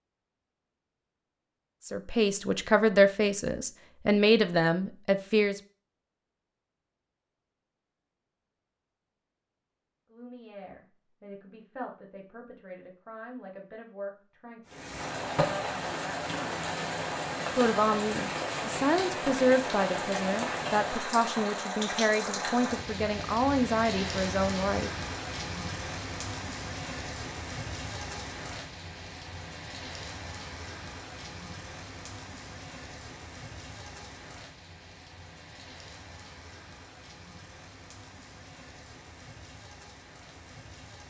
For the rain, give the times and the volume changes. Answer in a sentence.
The rain can be heard from 14.7 to 41.0 s, getting quieter.